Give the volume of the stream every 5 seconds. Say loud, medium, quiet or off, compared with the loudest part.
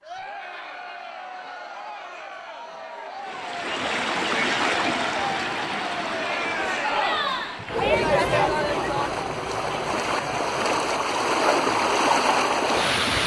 loud, medium, loud.